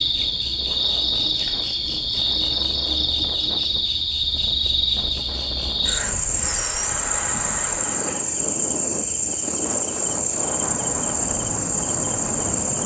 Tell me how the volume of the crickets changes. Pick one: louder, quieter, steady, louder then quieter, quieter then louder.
steady.